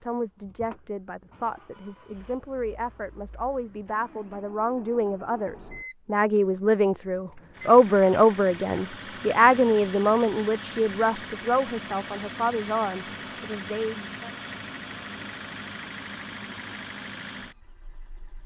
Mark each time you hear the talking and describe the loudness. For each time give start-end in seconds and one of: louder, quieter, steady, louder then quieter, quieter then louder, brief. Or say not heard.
0.0-14.3 louder then quieter.